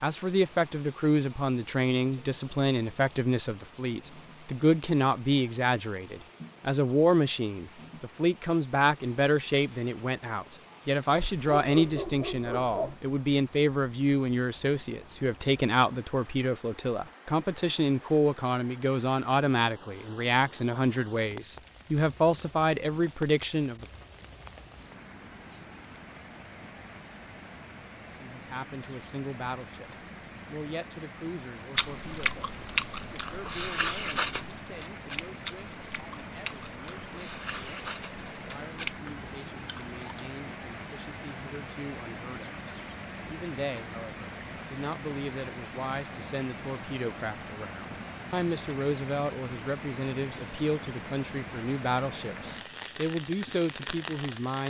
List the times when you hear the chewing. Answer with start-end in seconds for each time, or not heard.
31.8-40.2.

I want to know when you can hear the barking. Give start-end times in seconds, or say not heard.
11.2-12.9.